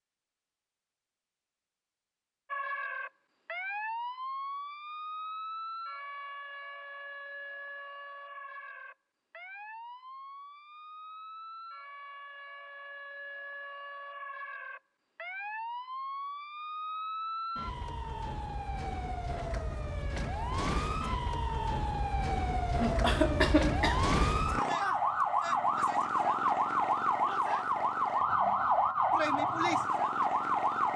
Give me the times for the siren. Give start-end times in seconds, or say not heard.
2.5-30.9.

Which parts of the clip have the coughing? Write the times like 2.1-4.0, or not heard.
22.8-24.1.